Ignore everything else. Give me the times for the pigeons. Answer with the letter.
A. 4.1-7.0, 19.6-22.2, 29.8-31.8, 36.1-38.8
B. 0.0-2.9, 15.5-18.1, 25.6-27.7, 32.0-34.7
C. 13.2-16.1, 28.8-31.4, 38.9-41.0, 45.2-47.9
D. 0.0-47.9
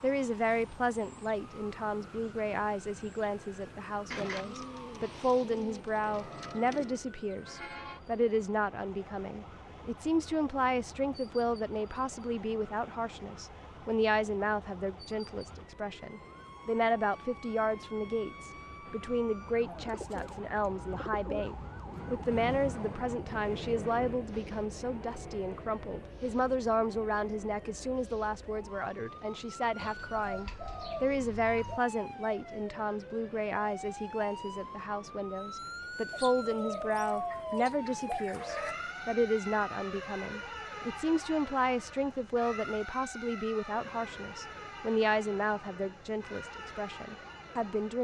A.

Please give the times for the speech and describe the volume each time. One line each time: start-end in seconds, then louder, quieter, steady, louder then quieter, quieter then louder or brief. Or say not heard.
0.0-47.9 steady.